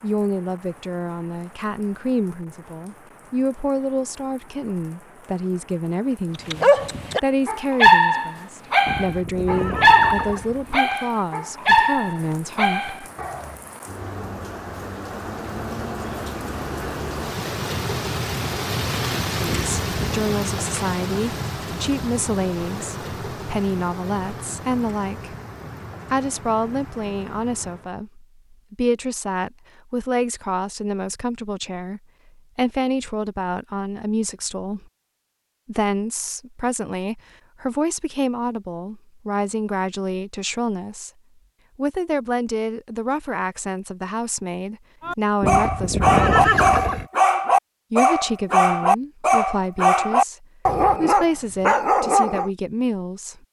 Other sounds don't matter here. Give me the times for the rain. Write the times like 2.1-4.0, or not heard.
0.0-27.9.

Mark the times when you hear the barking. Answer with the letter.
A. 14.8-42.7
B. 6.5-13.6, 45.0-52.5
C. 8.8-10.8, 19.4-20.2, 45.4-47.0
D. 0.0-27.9
B.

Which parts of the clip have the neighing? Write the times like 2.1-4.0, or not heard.
8.8-10.8, 19.4-20.2, 45.4-47.0.